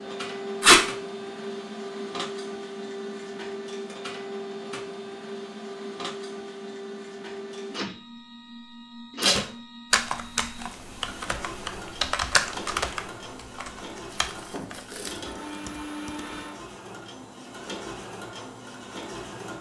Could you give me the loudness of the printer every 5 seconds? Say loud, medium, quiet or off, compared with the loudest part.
loud, loud, medium, loud.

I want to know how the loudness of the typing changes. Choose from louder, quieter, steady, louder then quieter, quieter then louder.
louder then quieter.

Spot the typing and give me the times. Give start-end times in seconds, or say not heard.
9.9-16.4.